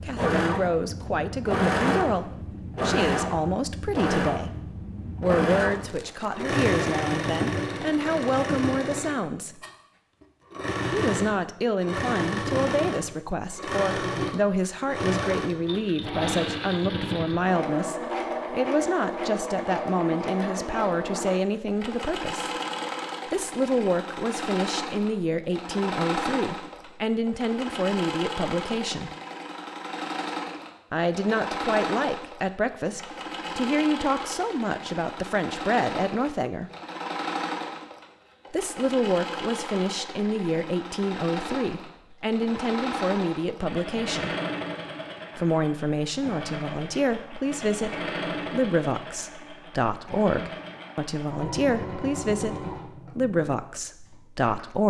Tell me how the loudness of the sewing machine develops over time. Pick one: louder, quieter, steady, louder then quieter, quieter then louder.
quieter.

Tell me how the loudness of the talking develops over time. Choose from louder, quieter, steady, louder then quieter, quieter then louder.
steady.